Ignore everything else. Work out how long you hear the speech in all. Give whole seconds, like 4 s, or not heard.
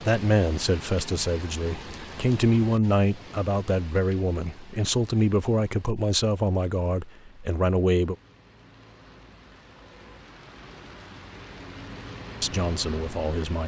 9 s.